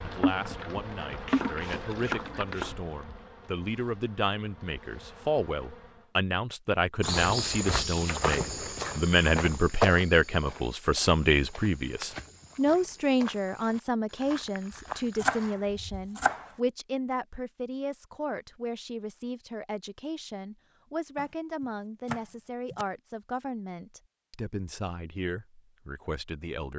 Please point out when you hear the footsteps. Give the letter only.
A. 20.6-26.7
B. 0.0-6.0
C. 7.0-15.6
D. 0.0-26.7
C.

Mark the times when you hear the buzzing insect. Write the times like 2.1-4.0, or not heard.
0.0-6.0.